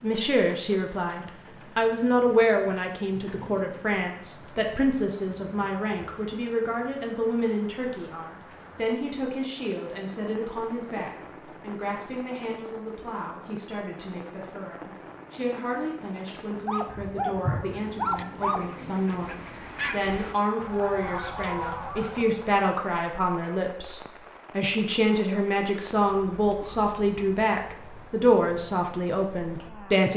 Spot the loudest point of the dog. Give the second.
18 s.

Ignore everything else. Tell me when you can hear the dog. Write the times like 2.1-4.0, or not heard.
16.6-18.6.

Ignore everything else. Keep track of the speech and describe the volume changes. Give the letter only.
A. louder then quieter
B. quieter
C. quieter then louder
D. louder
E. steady
C.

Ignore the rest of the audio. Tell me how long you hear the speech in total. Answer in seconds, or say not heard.
30 s.